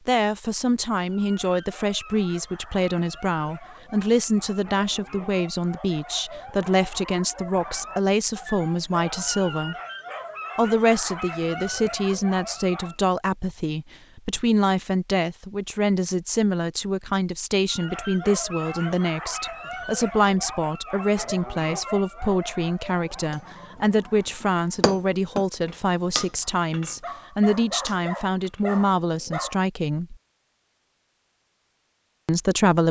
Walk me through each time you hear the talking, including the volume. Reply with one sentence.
You can hear the talking from 0.1 to 9.8 s, at a steady volume; from 10.6 to 30.1 s, at a steady volume; and briefly from 32.2 to 32.8 s.